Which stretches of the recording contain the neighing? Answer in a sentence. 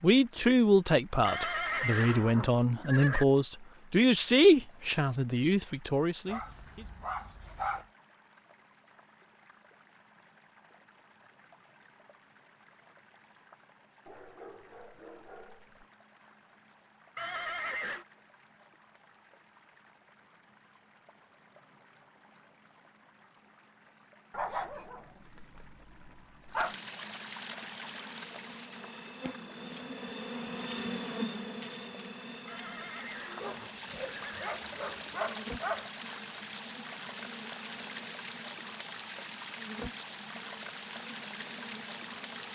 The neighing can be heard from 1.2 to 3.2 s, from 17.1 to 18.1 s and from 32.5 to 34.5 s.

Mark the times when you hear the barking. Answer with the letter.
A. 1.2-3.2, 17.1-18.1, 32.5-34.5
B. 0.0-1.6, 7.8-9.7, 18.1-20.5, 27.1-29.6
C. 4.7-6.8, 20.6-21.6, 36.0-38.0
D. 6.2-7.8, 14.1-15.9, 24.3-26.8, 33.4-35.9
D.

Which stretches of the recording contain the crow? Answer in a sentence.
You can't hear the crow here.